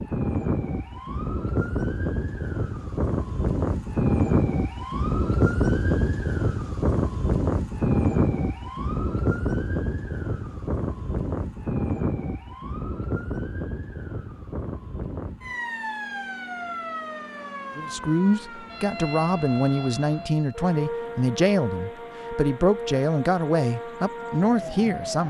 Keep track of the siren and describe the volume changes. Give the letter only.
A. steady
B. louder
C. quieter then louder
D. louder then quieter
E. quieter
E.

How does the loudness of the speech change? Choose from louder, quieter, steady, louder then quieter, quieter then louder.
steady.